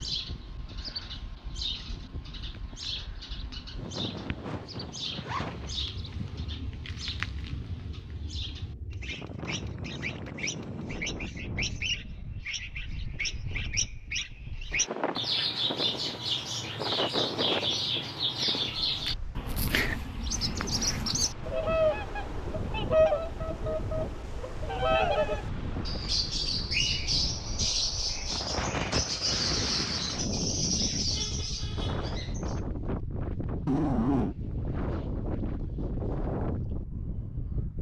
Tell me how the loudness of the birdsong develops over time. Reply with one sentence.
The volume of the birdsong goes up.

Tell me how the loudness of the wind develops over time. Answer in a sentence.
The loudness of the wind goes up.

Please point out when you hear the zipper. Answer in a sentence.
The zipper can be heard from 5.2 to 6.2 s and from 33.6 to 34.4 s.